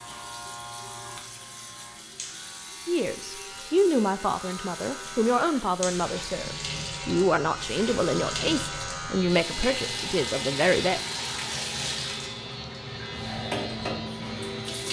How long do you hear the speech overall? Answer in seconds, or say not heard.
8 s.